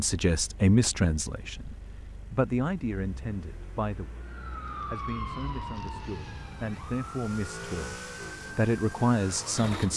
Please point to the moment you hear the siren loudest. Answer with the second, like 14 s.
5 s.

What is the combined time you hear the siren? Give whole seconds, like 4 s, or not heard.
6 s.